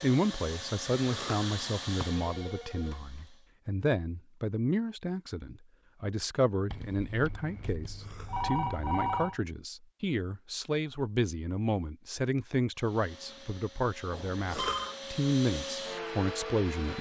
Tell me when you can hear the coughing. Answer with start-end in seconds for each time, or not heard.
1.1-1.5, 8.0-8.5, 14.4-15.0.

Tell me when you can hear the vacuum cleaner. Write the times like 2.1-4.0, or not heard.
0.0-3.5, 12.8-16.9.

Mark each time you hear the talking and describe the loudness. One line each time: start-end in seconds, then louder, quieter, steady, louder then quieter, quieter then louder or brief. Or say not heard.
0.0-16.9 steady.